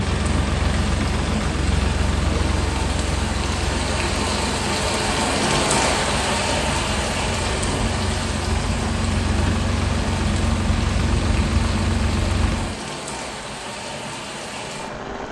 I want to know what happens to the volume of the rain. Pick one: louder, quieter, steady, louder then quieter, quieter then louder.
louder then quieter.